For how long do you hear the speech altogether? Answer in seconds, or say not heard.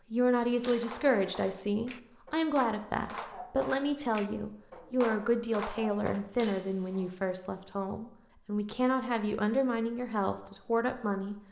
11 s.